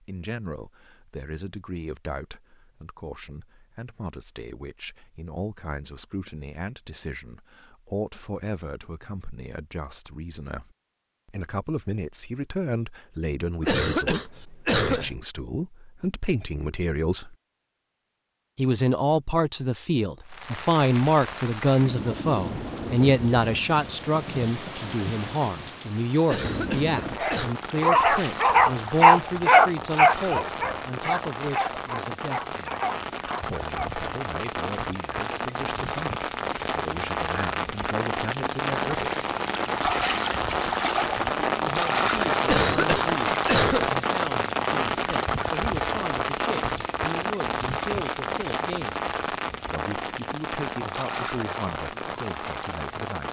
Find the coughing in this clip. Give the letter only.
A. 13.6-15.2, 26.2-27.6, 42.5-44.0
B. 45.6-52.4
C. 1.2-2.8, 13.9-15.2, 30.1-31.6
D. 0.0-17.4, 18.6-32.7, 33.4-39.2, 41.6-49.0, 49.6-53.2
A.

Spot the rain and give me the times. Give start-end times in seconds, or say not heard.
20.2-53.2.